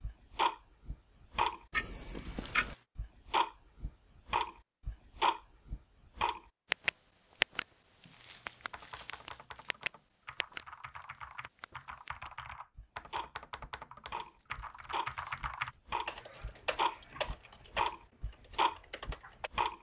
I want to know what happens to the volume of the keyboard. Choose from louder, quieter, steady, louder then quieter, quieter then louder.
louder.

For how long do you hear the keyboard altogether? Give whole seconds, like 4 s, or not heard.
11 s.